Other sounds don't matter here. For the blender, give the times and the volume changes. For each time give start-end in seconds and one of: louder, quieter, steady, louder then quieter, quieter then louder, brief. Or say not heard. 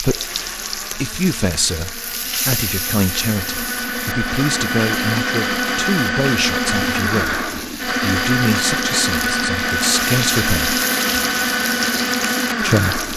0.0-13.1 louder.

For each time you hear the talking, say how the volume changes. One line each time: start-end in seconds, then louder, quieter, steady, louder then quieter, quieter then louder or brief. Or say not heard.
0.0-10.8 steady
12.6-13.1 brief.